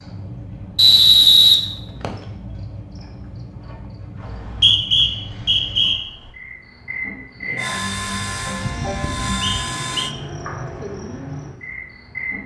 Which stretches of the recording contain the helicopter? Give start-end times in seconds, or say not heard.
7.5-10.2.